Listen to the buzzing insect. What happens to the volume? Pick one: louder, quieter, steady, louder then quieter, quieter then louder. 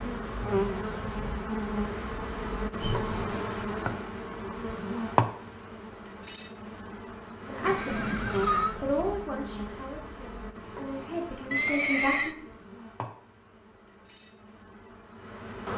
quieter.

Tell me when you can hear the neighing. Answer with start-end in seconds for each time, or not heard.
2.8-3.5, 7.7-8.8, 11.5-12.3.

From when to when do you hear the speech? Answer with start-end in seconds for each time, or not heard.
7.5-12.3.